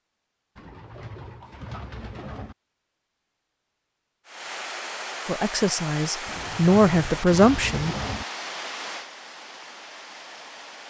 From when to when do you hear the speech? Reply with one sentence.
You can hear the speech from 5.2 to 8.0 s.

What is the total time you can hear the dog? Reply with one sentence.
You can't hear the dog here.